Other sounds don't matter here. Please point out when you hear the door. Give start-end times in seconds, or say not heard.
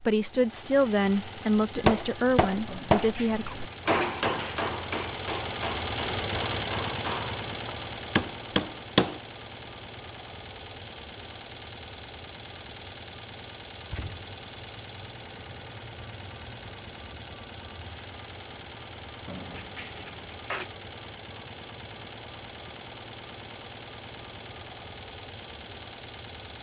2.6-4.6, 13.8-14.4, 19.2-20.7.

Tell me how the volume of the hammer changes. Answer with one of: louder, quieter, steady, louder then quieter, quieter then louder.
quieter then louder.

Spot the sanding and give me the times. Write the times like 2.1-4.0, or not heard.
not heard.